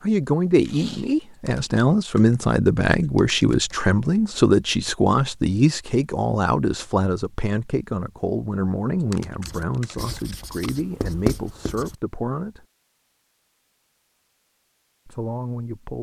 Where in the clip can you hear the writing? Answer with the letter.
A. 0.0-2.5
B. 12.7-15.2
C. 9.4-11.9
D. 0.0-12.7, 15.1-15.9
C.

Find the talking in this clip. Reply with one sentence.
The talking can be heard from 0.0 to 12.7 s and from 15.1 to 15.9 s.